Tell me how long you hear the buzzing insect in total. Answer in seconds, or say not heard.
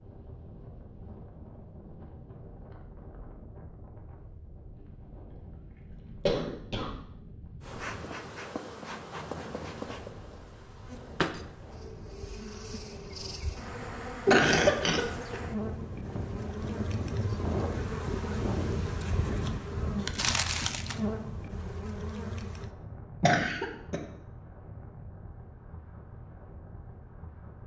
15 s.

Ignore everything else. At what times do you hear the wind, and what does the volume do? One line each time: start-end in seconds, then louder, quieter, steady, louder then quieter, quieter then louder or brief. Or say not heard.
0.0-27.6 louder then quieter.